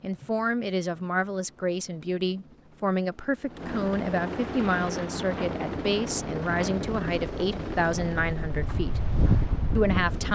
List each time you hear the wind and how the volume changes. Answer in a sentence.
You can hear the wind from 4.5 to 10.3 s, getting louder.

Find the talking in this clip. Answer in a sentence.
The talking can be heard from 0.0 to 9.0 s and from 9.8 to 10.3 s.